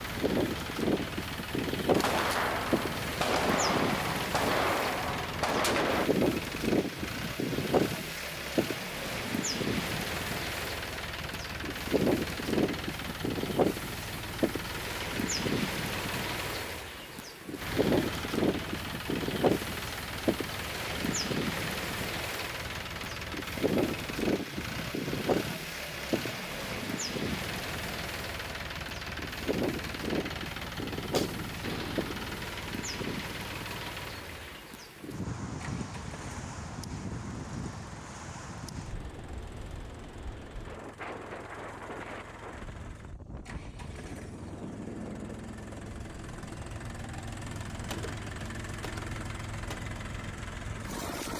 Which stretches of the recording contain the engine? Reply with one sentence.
The engine can be heard from 0.0 to 51.3 s.